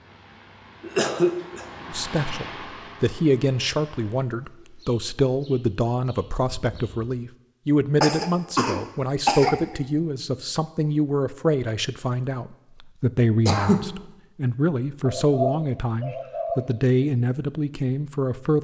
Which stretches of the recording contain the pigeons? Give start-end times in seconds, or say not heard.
4.4-7.1, 15.1-16.6.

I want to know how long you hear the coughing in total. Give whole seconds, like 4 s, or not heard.
3 s.